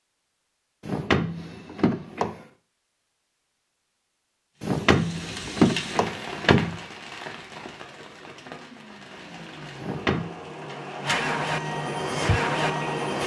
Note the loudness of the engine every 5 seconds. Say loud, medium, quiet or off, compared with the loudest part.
off, quiet, loud.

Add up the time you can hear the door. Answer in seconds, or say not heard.
4 s.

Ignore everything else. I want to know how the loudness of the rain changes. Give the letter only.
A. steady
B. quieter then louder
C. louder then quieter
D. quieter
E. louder
B.